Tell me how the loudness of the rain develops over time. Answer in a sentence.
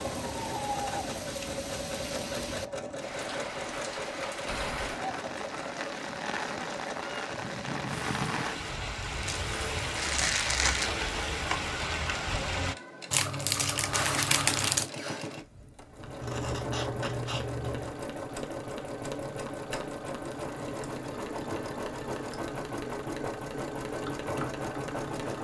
The loudness of the rain goes up.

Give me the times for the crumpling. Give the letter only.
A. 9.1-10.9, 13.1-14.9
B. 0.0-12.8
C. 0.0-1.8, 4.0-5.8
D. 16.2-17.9
A.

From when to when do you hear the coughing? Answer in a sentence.
The coughing can't be heard in this clip.